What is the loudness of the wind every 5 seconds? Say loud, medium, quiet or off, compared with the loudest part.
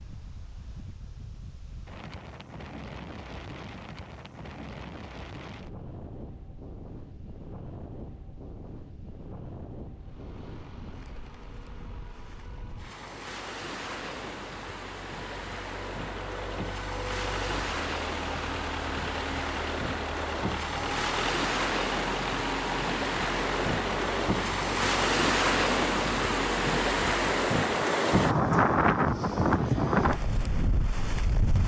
quiet, quiet, quiet, medium, medium, loud, medium.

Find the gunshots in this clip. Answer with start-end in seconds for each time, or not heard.
not heard.